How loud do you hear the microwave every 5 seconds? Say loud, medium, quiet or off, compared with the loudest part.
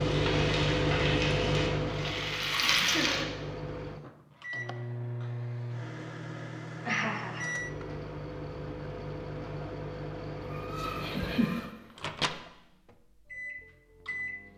loud, medium, medium.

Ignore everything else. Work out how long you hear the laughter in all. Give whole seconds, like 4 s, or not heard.
3 s.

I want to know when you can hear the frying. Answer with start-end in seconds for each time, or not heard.
0.0-3.2.